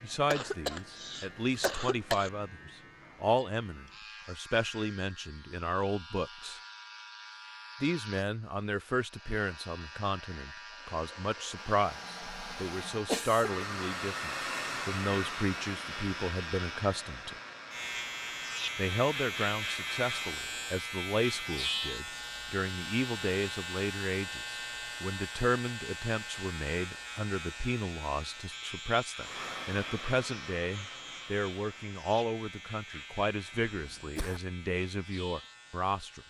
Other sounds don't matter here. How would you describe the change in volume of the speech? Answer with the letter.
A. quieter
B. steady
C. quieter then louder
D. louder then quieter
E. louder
B.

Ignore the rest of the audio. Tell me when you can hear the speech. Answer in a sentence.
The speech can be heard from 0.0 to 6.6 s, from 7.8 to 17.4 s and from 18.8 to 36.2 s.